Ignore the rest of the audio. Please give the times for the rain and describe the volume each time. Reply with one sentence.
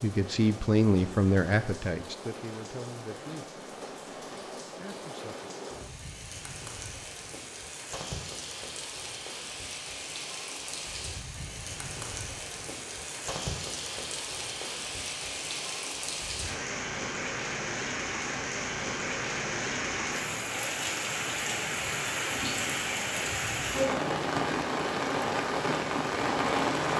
You can hear the rain from 0.0 to 26.9 s, getting louder.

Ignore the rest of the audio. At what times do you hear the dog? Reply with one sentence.
You can't hear the dog here.